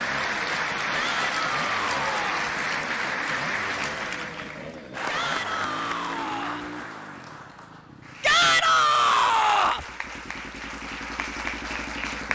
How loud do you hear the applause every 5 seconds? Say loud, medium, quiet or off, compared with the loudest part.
loud, medium, medium.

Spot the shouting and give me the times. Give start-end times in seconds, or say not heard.
0.9-2.5, 5.0-6.7, 8.2-9.8.